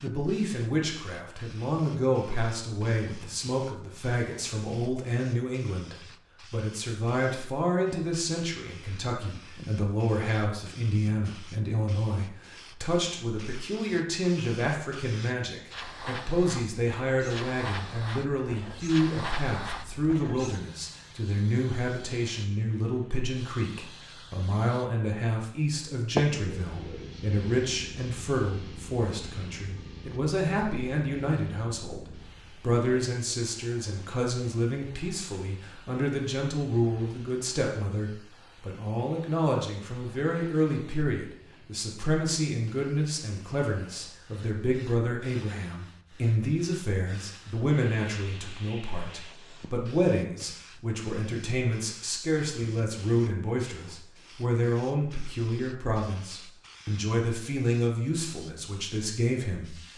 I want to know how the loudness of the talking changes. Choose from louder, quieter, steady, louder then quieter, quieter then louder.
steady.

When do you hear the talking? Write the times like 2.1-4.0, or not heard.
0.0-59.9.